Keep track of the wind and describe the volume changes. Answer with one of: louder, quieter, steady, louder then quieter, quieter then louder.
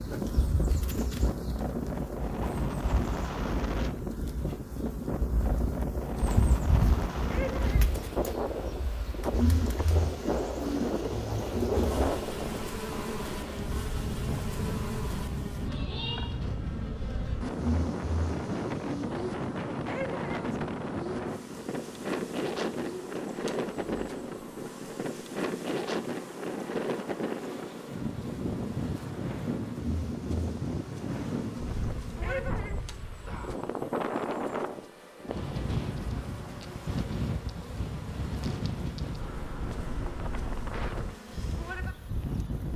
steady.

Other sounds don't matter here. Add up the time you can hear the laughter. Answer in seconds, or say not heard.
2 s.